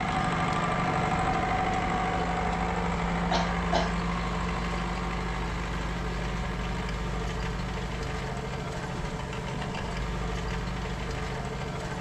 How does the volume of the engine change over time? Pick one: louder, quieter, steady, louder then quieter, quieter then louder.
quieter.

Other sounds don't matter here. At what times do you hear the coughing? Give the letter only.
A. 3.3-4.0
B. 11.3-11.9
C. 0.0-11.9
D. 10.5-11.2
A.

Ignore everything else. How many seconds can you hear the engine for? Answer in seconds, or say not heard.
12 s.